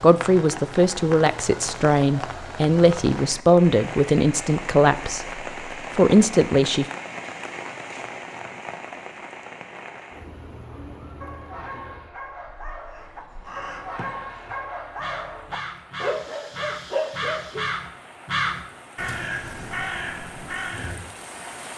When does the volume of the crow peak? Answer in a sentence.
The loudest moment of the crow is at 18 seconds.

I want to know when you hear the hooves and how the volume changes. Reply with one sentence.
You can't hear the hooves here.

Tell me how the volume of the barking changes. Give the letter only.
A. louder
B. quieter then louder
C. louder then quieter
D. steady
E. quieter
A.